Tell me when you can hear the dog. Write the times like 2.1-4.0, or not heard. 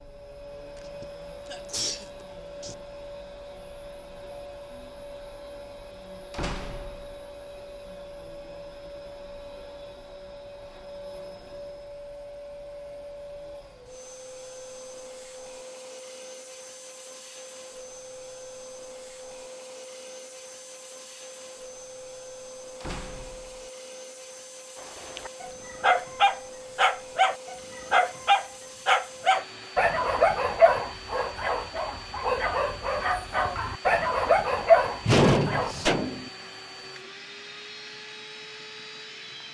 24.8-35.8.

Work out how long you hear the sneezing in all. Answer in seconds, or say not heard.
2 s.